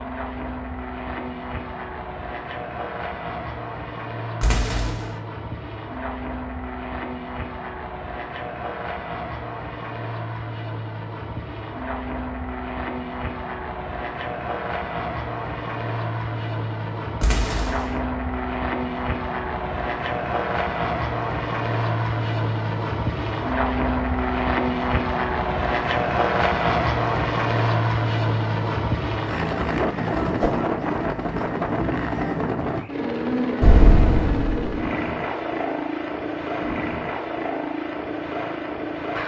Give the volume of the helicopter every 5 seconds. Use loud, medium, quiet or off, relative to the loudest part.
medium, medium, medium, medium, loud, loud, loud, medium.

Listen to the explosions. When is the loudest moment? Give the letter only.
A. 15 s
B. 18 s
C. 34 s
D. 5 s
C.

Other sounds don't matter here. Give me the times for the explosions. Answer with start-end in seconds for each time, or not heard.
4.4-5.1, 17.2-17.9, 33.6-34.8.